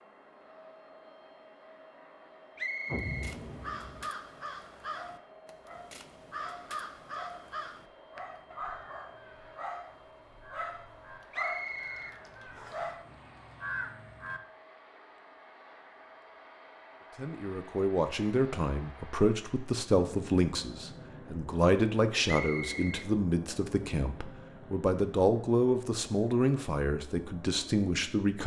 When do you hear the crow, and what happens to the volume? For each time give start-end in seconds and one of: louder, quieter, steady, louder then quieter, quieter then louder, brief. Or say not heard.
3.0-14.4 quieter then louder.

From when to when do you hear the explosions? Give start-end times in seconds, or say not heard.
2.9-4.1.